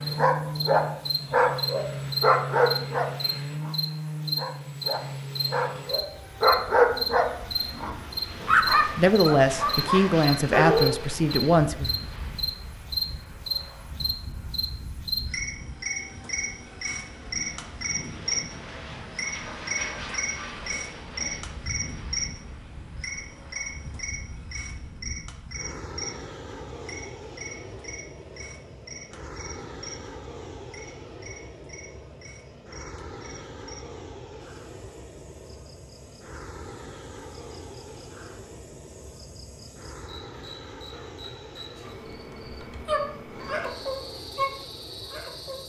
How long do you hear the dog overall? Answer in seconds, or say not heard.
14 s.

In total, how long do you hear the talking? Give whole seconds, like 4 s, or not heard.
3 s.